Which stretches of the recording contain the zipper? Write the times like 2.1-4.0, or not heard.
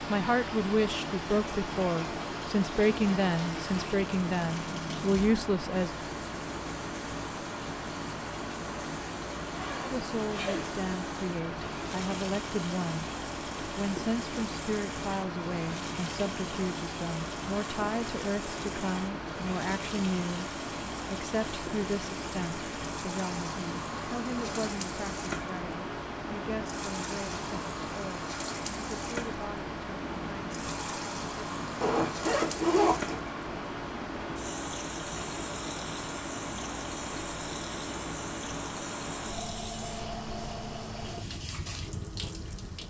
9.5-10.8, 31.8-33.2.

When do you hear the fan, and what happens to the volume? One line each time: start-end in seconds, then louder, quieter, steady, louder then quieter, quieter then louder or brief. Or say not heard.
0.0-42.8 steady.